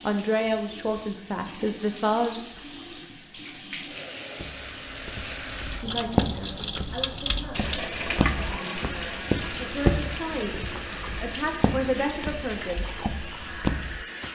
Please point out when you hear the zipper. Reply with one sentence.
You can't hear the zipper here.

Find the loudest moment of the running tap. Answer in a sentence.
The loudest moment of the running tap is at 8 seconds.